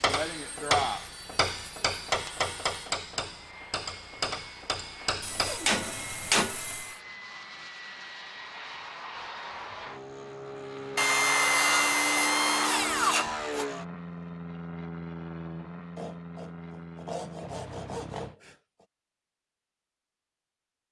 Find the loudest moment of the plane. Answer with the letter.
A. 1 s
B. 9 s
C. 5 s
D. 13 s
D.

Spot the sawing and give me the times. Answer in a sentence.
The sawing can be heard from 0.2 to 3.0 s, from 5.2 to 7.0 s, from 10.9 to 13.7 s and from 15.9 to 18.9 s.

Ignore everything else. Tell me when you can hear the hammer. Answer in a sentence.
The hammer can be heard from 0.0 to 6.6 s.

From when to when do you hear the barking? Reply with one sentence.
You can't hear the barking here.